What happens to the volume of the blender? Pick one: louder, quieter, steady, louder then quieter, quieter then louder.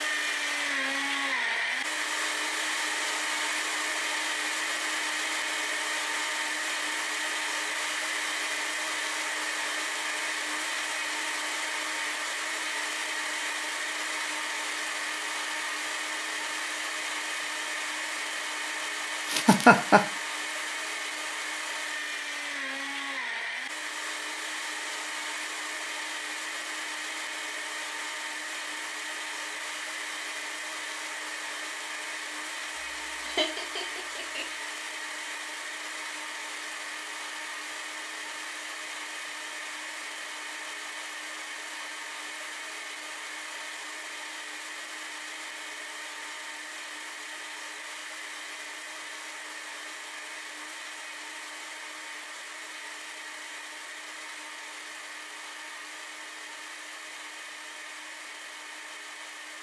quieter.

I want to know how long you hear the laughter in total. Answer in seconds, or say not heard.
2 s.